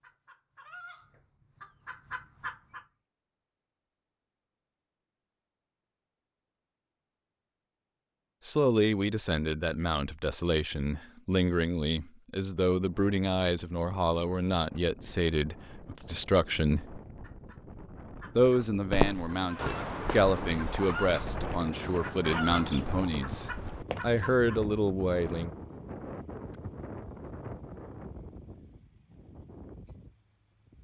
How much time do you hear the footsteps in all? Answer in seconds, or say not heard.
6 s.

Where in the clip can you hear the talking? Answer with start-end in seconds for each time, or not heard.
8.4-17.0, 18.4-25.5.